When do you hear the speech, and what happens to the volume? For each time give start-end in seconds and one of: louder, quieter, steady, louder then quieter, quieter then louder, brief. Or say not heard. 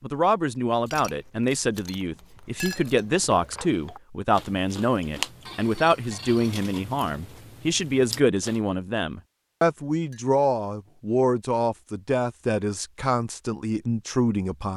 0.0-14.7 steady.